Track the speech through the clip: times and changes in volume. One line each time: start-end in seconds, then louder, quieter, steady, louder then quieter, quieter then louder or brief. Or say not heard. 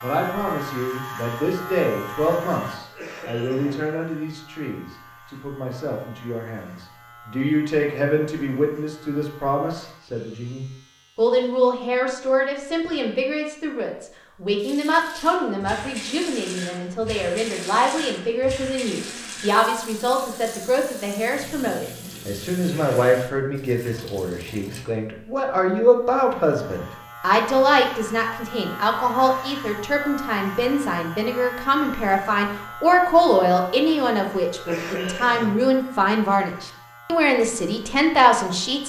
0.0-38.8 louder.